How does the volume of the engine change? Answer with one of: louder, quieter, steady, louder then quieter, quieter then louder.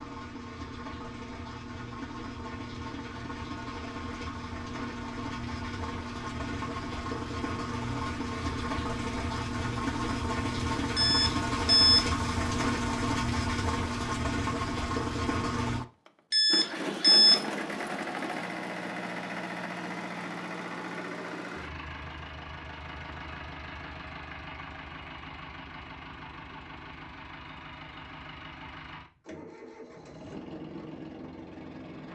louder then quieter.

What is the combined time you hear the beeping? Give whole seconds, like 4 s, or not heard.
2 s.